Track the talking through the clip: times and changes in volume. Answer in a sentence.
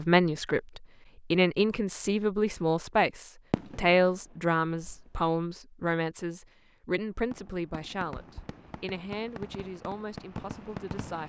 The talking can be heard from 0.0 to 11.2 s, getting quieter.